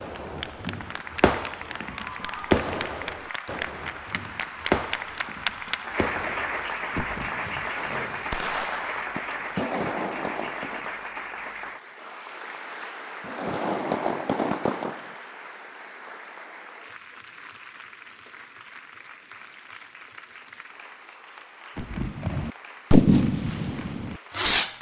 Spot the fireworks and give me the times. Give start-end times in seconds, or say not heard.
0.0-10.8, 13.2-15.0, 21.8-24.7.